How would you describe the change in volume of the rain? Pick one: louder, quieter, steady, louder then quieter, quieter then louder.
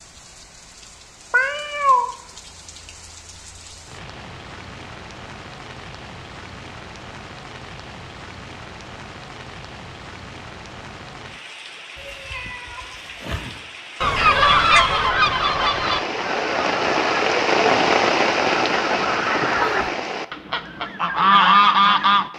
louder.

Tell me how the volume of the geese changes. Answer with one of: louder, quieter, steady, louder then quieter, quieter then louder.
quieter then louder.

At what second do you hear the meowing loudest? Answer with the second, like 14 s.
2 s.